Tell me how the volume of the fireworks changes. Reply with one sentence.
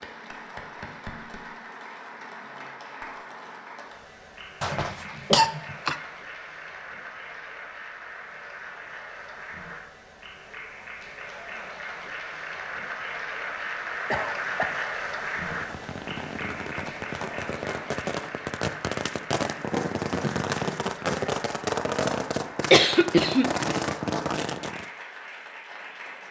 The loudness of the fireworks goes up.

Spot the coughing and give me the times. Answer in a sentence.
You can hear the coughing from 4.6 to 6.0 s, from 14.1 to 14.7 s and from 22.7 to 23.7 s.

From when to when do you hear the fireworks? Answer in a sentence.
The fireworks can be heard from 15.4 to 24.9 s.